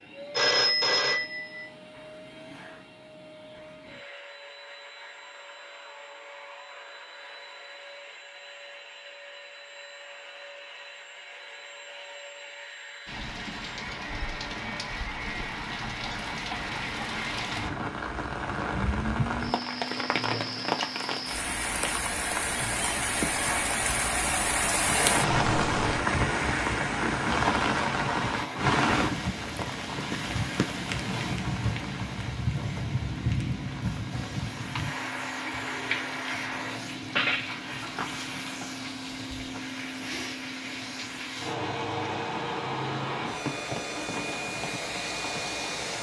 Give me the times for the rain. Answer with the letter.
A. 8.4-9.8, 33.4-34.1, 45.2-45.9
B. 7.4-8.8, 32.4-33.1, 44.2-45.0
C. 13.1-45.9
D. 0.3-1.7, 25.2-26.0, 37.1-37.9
C.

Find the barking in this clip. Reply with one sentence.
You can't hear the barking here.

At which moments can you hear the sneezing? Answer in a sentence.
You can't hear the sneezing here.